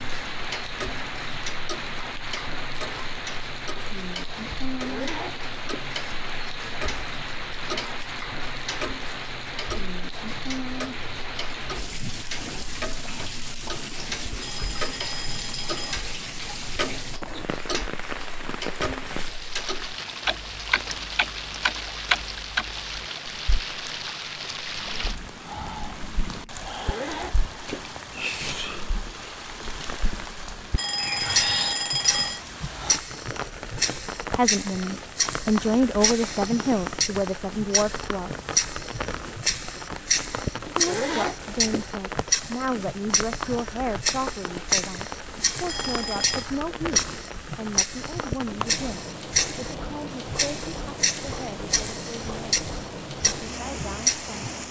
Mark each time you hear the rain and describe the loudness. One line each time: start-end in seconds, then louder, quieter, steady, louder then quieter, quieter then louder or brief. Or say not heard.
0.0-54.6 steady.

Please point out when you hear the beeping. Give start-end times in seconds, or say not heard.
14.4-16.0, 30.8-32.4, 45.6-46.5.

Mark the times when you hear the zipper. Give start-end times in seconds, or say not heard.
4.8-5.9, 26.8-27.9, 40.8-42.0.